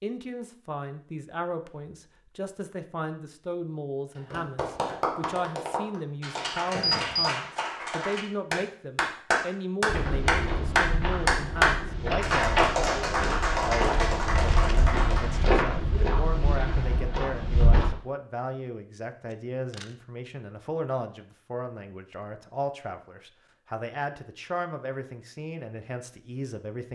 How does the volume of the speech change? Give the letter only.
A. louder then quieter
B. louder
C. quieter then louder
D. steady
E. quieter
D.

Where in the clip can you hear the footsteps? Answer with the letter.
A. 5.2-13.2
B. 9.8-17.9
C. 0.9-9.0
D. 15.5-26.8
B.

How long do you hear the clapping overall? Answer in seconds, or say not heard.
11 s.